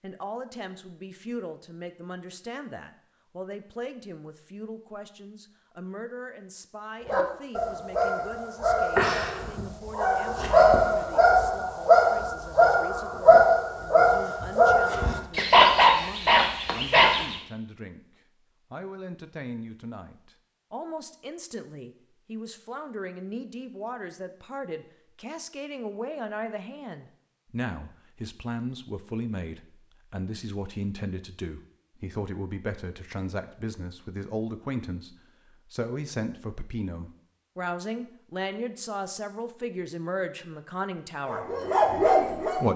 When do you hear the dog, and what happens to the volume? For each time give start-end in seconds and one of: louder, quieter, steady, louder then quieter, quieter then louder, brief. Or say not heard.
7.0-17.4 louder
41.2-42.7 brief.